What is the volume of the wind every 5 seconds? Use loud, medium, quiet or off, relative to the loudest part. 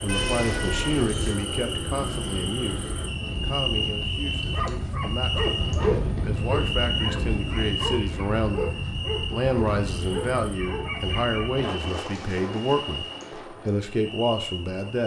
loud, loud, medium.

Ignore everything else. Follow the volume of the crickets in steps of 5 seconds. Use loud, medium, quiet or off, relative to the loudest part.
loud, loud, medium.